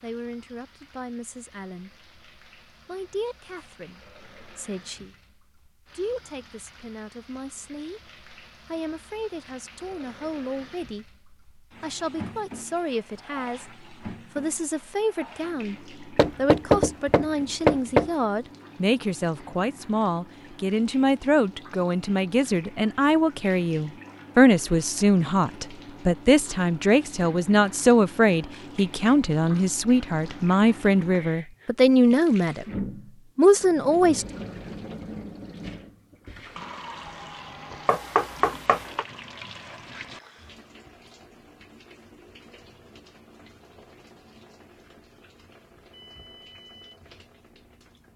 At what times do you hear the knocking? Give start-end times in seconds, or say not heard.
16.1-18.1, 37.9-39.0.